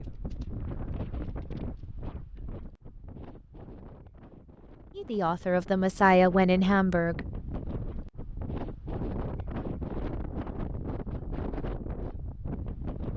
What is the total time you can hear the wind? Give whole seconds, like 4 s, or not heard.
13 s.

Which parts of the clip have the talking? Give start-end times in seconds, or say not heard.
5.0-7.2.